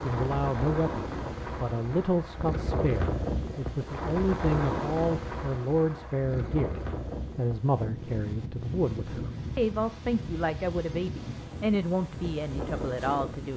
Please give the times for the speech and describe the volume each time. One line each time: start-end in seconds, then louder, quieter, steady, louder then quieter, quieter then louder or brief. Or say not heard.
0.0-13.5 steady.